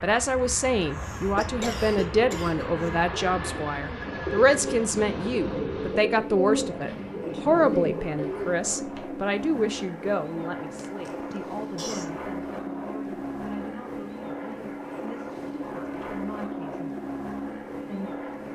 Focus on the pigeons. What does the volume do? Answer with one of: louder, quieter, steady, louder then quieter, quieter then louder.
louder.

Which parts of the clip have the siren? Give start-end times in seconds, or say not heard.
not heard.